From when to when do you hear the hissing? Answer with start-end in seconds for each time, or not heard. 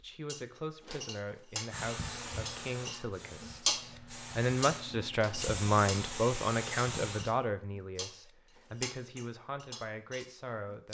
1.7-7.2.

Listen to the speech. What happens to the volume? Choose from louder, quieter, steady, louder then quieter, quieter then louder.
louder then quieter.